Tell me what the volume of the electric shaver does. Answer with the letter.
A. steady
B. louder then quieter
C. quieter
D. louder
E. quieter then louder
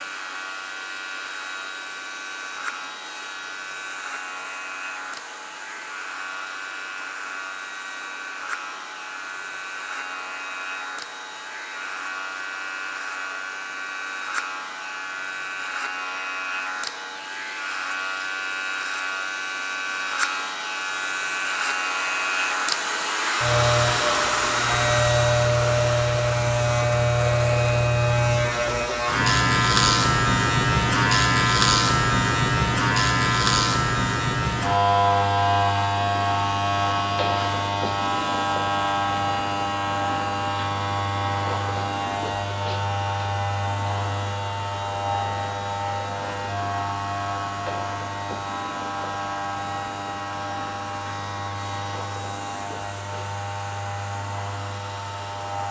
B.